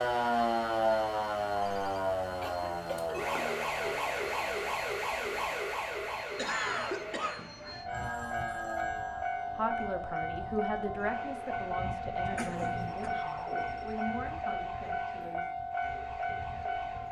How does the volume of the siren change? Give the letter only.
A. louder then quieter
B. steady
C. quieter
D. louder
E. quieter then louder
C.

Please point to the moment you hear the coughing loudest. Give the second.
7 s.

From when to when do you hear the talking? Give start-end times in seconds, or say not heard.
9.6-15.5.